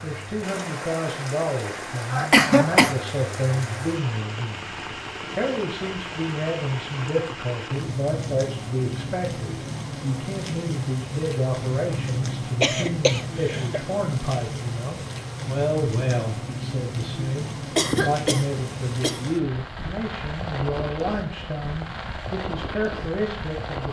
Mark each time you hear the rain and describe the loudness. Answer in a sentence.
The rain can be heard from 0.0 to 23.8 s, at a steady volume.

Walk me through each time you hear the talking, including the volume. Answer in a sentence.
The talking can be heard from 0.0 to 23.8 s, at a steady volume.